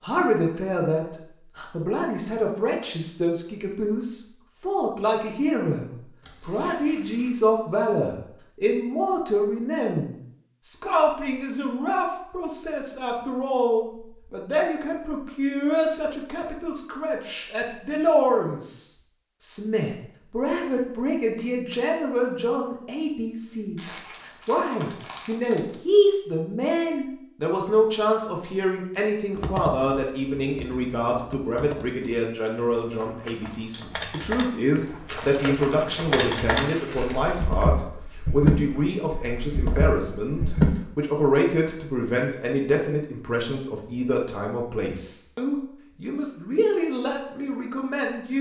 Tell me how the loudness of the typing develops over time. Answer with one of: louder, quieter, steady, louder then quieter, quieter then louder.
quieter then louder.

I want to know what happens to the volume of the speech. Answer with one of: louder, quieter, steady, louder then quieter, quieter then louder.
steady.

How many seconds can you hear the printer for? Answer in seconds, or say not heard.
not heard.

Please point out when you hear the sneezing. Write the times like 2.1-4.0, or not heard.
not heard.